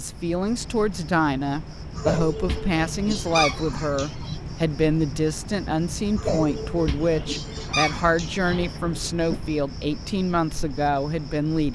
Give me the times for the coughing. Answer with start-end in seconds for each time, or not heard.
1.9-4.4, 6.2-8.6.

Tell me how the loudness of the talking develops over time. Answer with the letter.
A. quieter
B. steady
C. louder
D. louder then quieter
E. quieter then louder
B.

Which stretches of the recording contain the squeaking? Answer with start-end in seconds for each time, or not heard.
2.5-3.8, 6.8-9.4.